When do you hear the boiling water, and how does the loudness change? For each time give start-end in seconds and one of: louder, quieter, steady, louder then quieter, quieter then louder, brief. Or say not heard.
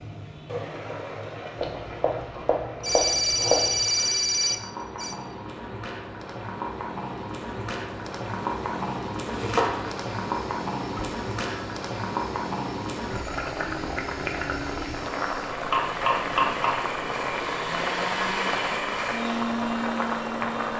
0.0-20.7 louder.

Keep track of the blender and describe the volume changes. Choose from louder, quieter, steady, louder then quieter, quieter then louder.
louder.